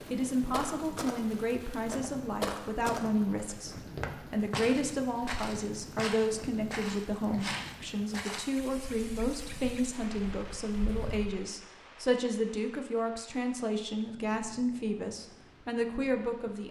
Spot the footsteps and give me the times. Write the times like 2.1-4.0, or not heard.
0.5-11.3.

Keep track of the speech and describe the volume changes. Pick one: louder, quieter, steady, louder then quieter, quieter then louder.
steady.